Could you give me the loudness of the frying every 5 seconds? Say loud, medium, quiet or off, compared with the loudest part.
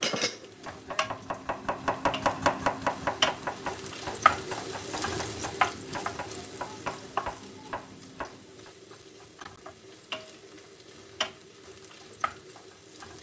loud, loud, medium.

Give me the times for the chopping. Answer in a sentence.
You can hear the chopping from 0.5 to 8.7 s.